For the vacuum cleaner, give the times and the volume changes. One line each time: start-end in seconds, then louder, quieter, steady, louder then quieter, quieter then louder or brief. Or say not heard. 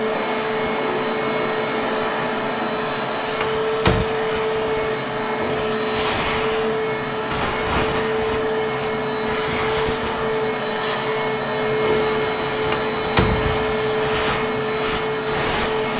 0.0-15.9 steady.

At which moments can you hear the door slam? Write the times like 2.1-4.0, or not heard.
3.4-4.0, 12.7-13.7.